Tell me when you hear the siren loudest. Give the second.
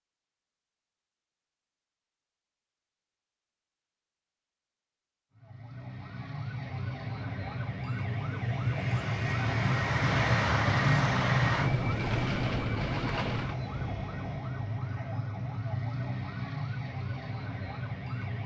11 s.